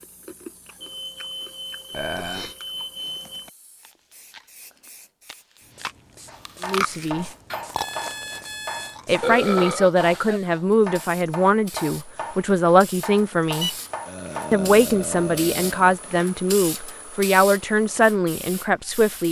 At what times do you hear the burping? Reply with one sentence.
The burping can be heard from 1.9 to 2.5 s, from 9.2 to 10.4 s and from 14.1 to 16.0 s.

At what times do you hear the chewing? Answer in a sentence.
You can hear the chewing from 0.0 to 9.1 s.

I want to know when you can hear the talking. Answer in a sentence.
The talking can be heard from 6.6 to 7.3 s, from 9.1 to 13.7 s and from 14.5 to 19.2 s.